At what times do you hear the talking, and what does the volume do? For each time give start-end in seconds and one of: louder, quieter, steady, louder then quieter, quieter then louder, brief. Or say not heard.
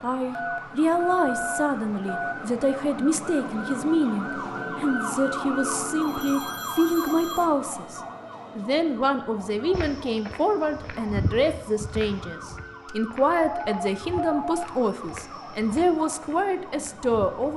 0.0-17.5 steady.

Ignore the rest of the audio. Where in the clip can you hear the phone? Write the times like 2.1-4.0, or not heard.
0.3-2.4, 6.0-7.5, 12.8-14.7.